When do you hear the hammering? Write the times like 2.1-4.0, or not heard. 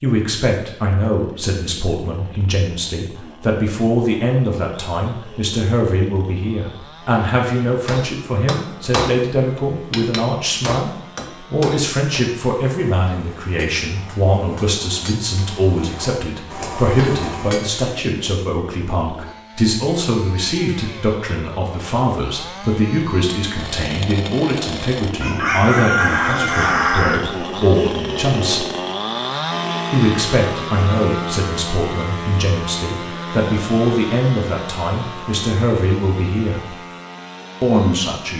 7.8-17.8.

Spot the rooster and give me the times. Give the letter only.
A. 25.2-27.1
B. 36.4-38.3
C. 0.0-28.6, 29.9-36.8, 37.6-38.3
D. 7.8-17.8
A.